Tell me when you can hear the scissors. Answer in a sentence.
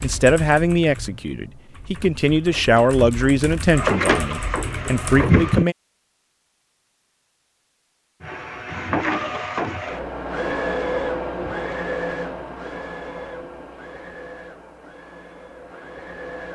You can't hear the scissors here.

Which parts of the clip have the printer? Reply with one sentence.
The printer can be heard from 2.4 to 5.7 s and from 8.2 to 16.5 s.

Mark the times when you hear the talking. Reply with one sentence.
You can hear the talking from 0.0 to 5.8 s.